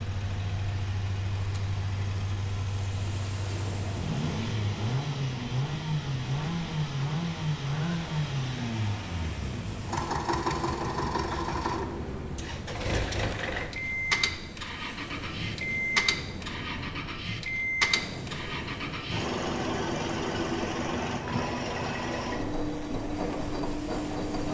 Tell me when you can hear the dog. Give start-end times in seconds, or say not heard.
not heard.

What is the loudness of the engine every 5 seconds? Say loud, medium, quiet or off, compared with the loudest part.
medium, loud, loud, loud, loud.